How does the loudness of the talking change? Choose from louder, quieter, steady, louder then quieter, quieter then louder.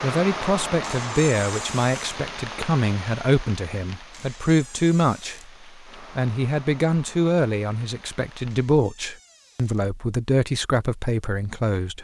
steady.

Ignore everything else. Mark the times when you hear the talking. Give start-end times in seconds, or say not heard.
0.0-11.9.